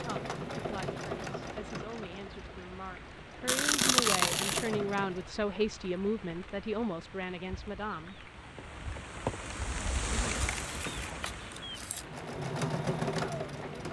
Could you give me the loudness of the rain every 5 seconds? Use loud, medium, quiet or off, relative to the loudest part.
medium, loud, loud.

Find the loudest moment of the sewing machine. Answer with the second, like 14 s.
13 s.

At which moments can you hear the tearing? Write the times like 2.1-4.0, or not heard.
3.5-4.7, 10.2-12.1.